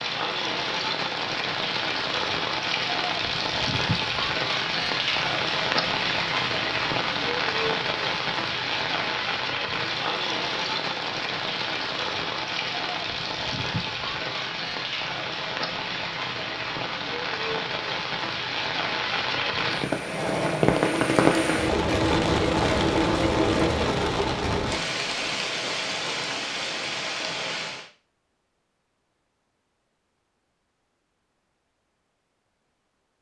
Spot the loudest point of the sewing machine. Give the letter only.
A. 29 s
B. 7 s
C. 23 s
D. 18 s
C.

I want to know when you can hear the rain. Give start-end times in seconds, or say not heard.
0.0-27.9.